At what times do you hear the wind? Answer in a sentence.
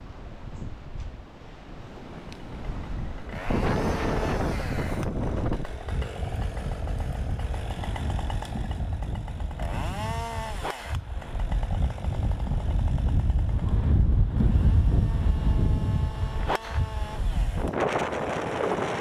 The wind can be heard from 0.0 to 18.9 s.